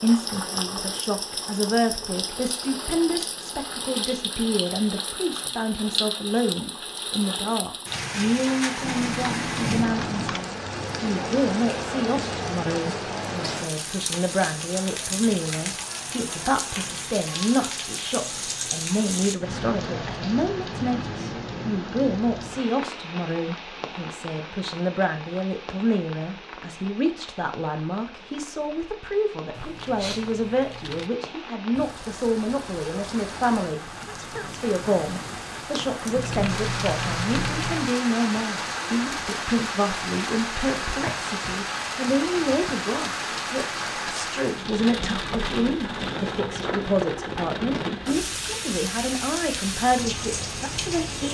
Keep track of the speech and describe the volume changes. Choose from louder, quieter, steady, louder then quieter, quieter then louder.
steady.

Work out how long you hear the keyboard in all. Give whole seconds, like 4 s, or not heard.
5 s.